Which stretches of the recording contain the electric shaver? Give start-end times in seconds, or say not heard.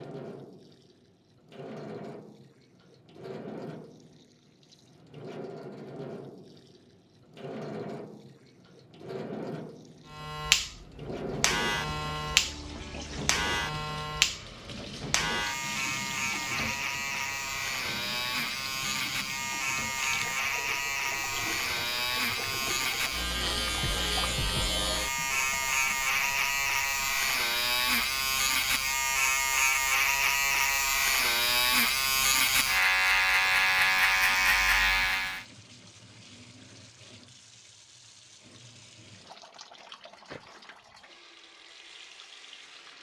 10.1-35.5.